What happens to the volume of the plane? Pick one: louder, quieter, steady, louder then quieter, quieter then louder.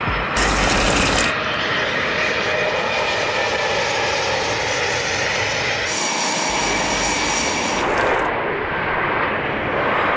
steady.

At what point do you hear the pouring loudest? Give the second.
1 s.